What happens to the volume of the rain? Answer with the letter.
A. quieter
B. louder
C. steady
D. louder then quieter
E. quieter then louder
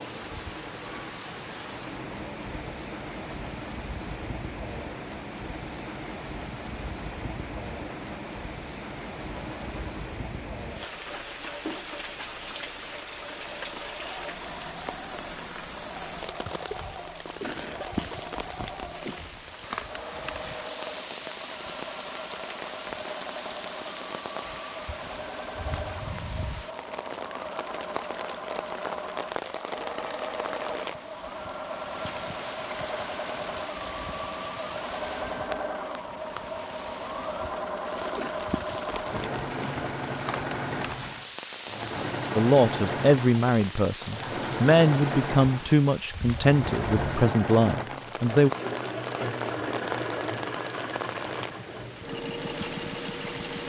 C.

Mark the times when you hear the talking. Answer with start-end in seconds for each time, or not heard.
42.4-48.5.